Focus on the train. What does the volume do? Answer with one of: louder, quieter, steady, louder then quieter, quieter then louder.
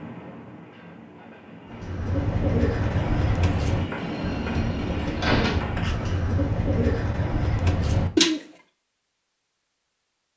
louder.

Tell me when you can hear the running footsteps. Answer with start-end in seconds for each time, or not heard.
not heard.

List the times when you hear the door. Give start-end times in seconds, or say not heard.
4.0-5.7.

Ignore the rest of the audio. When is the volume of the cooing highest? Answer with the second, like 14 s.
8 s.